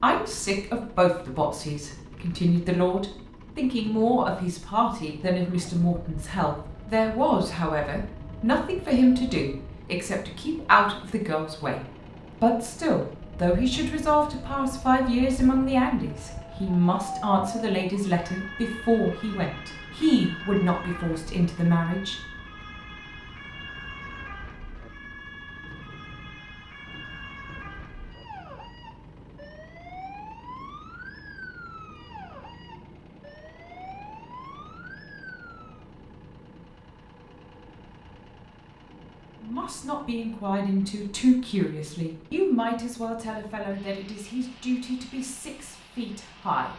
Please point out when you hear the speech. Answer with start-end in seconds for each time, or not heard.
0.0-22.1, 39.4-46.7.